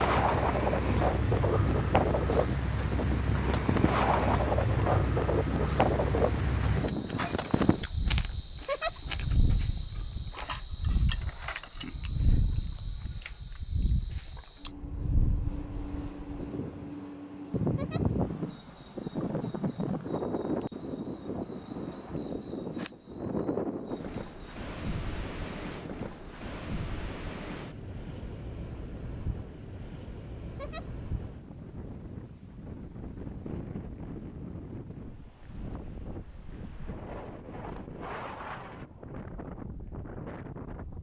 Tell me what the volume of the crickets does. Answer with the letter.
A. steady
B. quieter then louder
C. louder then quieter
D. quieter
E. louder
D.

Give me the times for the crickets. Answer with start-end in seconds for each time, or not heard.
0.0-25.8.